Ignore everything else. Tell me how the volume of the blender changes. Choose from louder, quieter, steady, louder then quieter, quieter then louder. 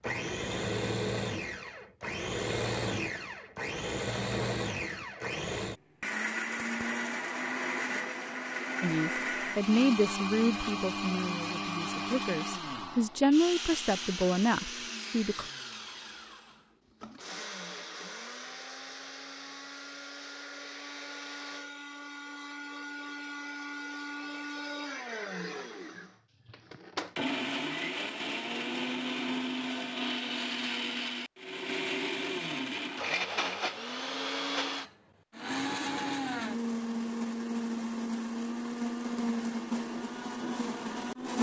quieter then louder.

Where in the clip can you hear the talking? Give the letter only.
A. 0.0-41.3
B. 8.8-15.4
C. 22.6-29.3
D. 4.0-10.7
B.